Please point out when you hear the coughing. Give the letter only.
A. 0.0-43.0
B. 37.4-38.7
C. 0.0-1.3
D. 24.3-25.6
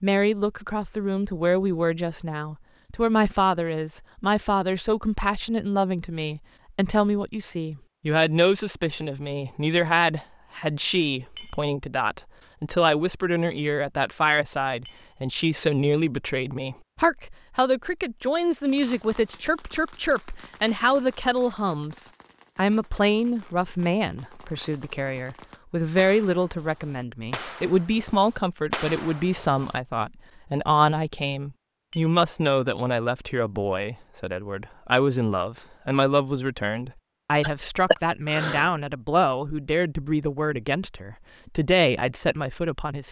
B.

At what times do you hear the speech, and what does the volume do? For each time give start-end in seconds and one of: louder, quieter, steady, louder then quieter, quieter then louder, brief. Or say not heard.
0.0-43.0 steady.